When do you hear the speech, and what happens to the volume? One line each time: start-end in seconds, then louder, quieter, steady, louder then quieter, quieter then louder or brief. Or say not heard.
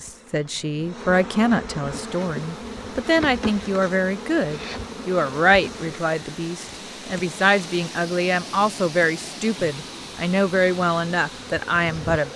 0.0-12.3 steady.